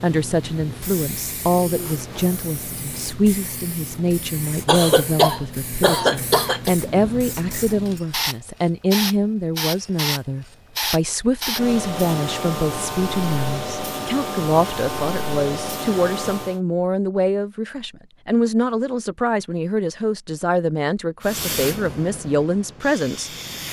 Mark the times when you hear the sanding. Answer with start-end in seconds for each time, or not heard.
not heard.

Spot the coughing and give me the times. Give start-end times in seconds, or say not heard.
4.7-6.8.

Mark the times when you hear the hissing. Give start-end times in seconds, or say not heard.
0.0-16.6, 21.2-23.6.